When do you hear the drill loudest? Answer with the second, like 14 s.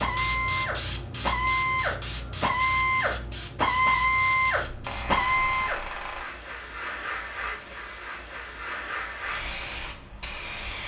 4 s.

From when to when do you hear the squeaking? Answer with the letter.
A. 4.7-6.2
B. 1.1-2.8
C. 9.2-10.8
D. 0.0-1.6
A.